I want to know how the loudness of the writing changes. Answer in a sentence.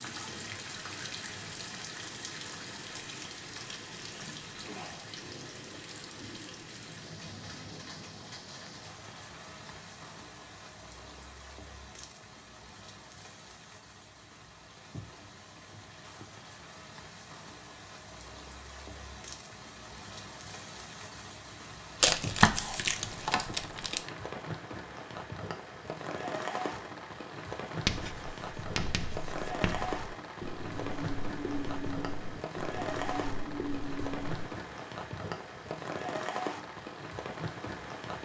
The loudness of the writing stays about the same.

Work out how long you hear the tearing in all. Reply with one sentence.
You can hear the tearing for 2 seconds altogether.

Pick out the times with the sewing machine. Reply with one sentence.
The sewing machine can't be heard in this clip.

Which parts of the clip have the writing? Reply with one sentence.
You can hear the writing from 27.8 to 34.5 s.